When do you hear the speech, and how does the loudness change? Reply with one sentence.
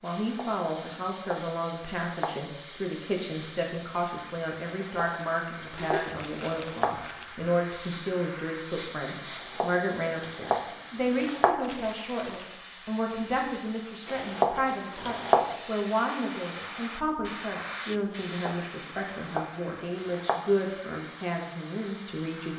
You can hear the speech from 0.0 to 22.5 s, at a steady volume.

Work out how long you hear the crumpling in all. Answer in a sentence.
The crumpling can be heard for 3 seconds in total.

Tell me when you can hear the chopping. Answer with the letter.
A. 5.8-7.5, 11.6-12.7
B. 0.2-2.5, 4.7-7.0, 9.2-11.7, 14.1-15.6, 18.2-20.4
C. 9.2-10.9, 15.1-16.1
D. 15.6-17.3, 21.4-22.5
B.